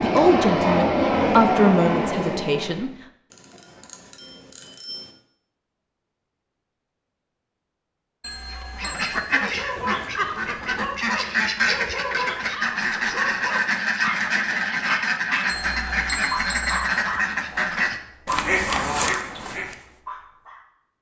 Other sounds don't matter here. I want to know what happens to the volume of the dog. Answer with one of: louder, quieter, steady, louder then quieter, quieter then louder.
steady.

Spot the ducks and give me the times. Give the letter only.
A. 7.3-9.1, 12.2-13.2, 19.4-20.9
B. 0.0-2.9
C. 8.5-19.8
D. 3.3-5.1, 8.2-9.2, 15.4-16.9
C.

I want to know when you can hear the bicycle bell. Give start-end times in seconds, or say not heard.
3.3-5.1, 8.2-9.2, 15.4-16.9.